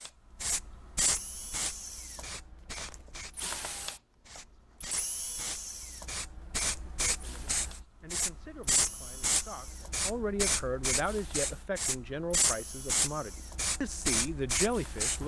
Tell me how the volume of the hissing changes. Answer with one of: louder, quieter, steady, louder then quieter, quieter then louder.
quieter then louder.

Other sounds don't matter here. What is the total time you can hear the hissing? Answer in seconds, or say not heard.
15 s.